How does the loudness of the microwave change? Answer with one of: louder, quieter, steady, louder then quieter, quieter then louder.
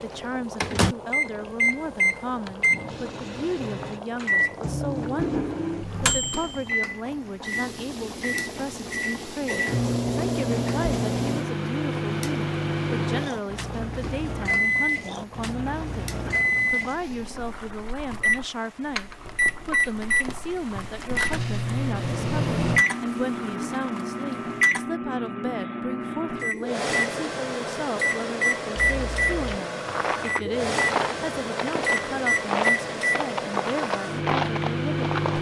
steady.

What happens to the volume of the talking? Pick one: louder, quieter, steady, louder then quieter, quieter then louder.
steady.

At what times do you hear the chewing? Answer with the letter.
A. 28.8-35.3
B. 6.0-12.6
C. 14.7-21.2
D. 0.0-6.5
A.